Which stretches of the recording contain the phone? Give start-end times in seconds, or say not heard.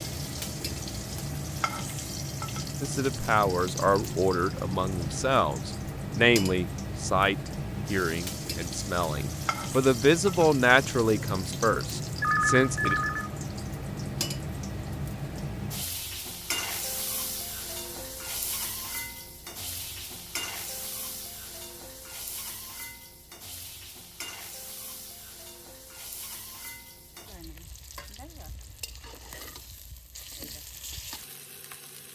12.2-13.3.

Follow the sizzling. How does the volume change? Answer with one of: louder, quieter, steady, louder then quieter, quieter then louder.
quieter.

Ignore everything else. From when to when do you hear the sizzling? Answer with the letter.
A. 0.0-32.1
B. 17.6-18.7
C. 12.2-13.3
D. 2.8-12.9
A.